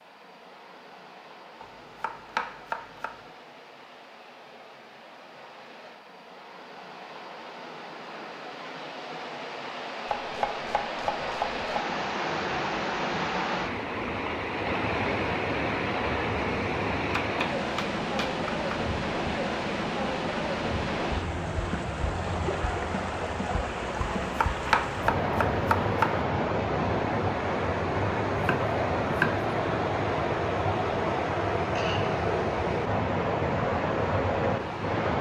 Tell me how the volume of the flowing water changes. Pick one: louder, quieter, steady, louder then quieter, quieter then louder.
louder.